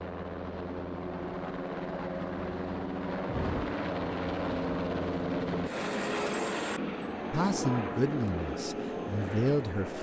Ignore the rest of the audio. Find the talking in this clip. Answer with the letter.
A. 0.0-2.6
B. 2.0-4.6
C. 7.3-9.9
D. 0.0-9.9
C.